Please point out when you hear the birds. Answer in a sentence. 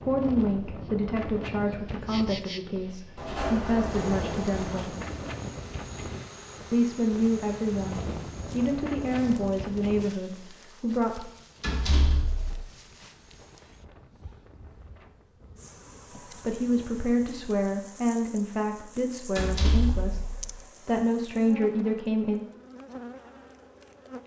You can't hear the birds here.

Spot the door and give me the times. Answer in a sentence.
The door can be heard from 3.1 to 4.8 s, from 11.6 to 12.7 s and from 19.4 to 20.6 s.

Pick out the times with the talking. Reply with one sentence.
The talking can be heard from 0.0 to 5.0 s, from 6.7 to 11.2 s and from 16.4 to 22.4 s.